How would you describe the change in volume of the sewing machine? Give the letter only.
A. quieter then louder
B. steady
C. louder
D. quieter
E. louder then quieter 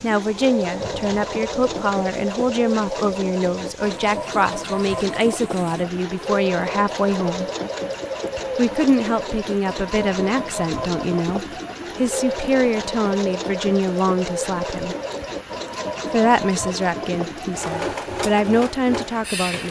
B.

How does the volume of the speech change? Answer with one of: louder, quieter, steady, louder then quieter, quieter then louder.
steady.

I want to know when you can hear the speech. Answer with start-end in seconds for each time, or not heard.
0.0-7.5, 8.6-14.9, 16.1-19.6.